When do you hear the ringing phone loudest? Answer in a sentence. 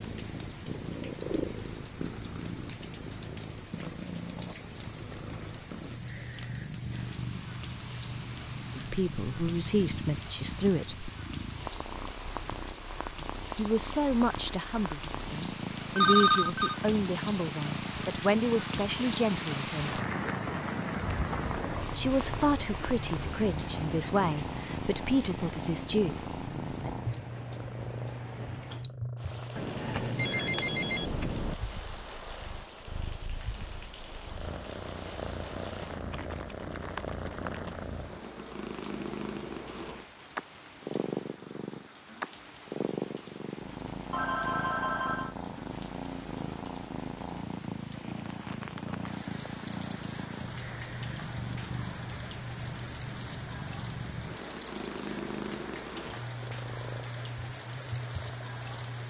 The loudest moment of the ringing phone is at 16 seconds.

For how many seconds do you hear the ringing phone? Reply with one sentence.
The ringing phone can be heard for 4 seconds in total.